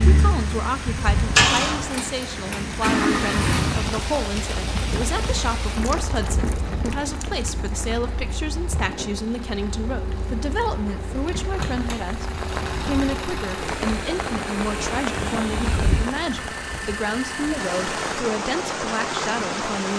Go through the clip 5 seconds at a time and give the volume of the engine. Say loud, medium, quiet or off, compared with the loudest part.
loud, quiet, medium, medium.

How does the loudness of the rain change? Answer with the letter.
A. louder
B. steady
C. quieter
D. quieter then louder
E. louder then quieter
D.